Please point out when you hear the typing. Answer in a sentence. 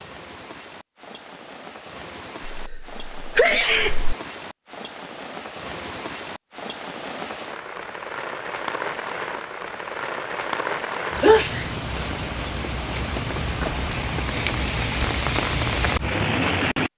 The typing can't be heard in this clip.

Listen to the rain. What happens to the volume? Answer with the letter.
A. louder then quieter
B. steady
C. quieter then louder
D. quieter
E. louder
E.